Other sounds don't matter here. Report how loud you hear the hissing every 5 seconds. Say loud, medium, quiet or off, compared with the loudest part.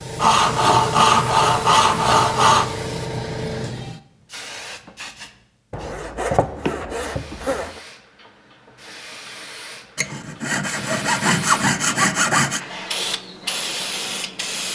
loud, medium, loud.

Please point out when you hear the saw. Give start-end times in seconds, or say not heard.
0.1-2.7, 5.7-7.8, 9.9-12.6.